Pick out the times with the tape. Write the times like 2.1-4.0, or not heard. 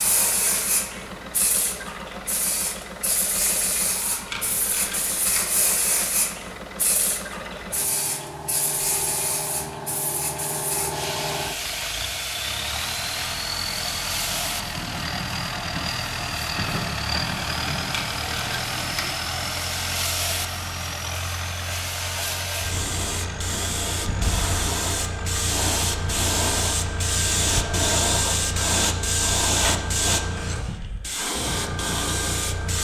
4.3-5.5, 17.9-19.1.